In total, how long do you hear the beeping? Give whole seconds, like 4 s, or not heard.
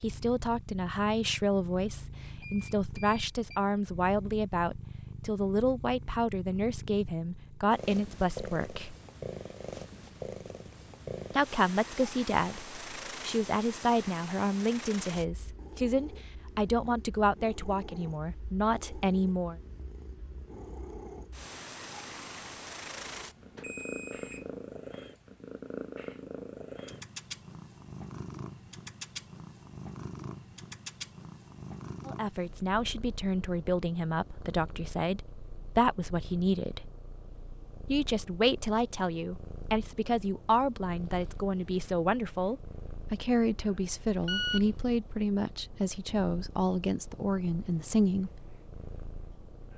3 s.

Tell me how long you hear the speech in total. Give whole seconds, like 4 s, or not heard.
33 s.